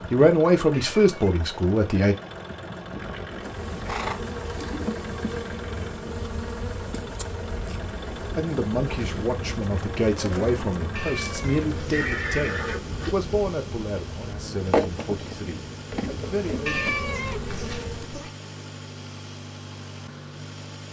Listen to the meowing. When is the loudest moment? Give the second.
17 s.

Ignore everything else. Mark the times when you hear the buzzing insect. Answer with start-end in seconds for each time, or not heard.
3.3-18.1.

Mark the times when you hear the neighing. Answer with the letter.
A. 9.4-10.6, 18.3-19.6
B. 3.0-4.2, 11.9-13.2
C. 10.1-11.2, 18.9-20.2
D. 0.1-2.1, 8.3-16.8
B.